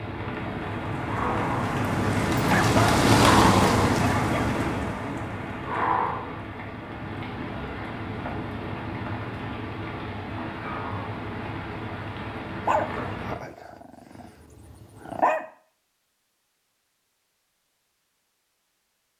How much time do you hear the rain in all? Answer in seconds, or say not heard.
13 s.